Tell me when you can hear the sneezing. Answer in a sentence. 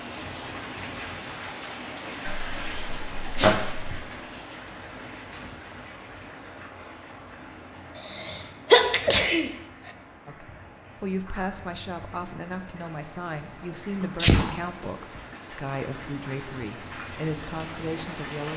You can hear the sneezing from 2.2 to 4.0 s, from 8.1 to 9.5 s and from 14.0 to 14.5 s.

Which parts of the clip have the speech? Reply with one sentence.
The speech can be heard from 10.2 to 18.5 s.